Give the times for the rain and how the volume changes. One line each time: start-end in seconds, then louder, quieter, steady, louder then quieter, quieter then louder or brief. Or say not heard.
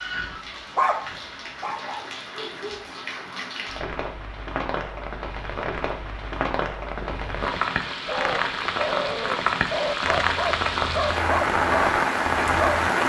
0.0-13.0 louder.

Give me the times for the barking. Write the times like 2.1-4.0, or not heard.
0.0-2.9, 6.8-12.9.